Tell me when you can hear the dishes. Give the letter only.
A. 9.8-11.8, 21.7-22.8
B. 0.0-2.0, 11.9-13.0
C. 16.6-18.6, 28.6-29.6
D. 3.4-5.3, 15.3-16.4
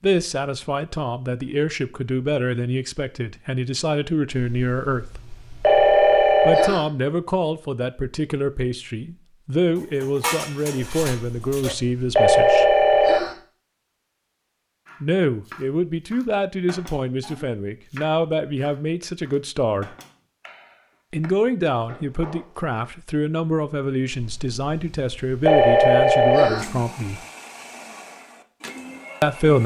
A.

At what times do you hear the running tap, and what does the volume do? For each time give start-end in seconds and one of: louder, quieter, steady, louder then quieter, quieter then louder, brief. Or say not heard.
not heard.